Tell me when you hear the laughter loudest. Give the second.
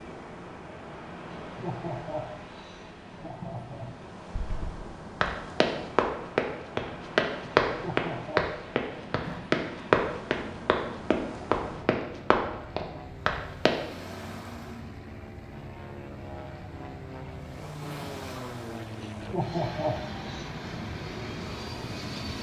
20 s.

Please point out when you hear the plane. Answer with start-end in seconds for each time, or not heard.
8.8-22.3.